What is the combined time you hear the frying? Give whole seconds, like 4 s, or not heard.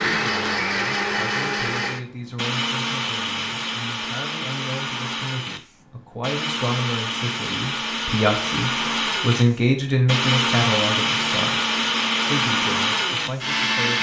not heard.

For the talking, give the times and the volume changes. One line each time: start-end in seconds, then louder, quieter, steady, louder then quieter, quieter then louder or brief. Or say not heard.
0.0-13.9 louder then quieter.